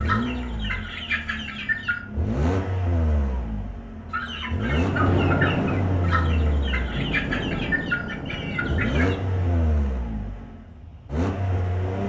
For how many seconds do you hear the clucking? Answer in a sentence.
You can hear the clucking for 7 seconds altogether.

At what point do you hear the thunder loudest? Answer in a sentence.
The volume of the thunder peaks at 5 seconds.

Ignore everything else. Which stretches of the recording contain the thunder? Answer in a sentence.
You can hear the thunder from 4.8 to 9.5 s.